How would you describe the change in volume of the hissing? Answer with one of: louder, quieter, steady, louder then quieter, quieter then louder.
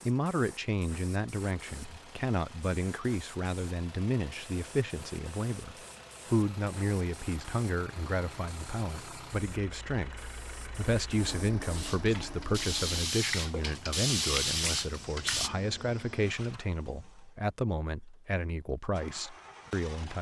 louder.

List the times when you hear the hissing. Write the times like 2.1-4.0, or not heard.
0.0-15.5.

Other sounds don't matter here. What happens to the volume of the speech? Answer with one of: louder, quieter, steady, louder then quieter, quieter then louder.
steady.